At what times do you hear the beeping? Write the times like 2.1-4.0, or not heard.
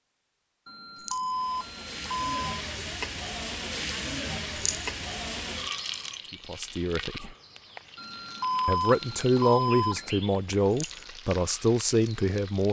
0.7-2.5, 8.0-10.2.